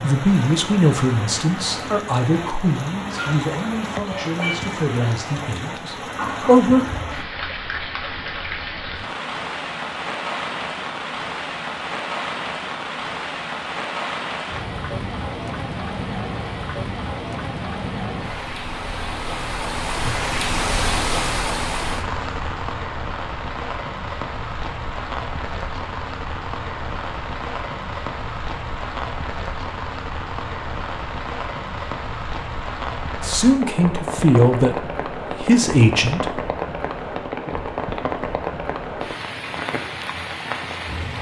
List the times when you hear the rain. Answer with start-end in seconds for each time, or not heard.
0.0-41.1.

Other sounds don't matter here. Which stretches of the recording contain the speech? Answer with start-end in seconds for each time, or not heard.
0.0-6.8, 33.2-36.5.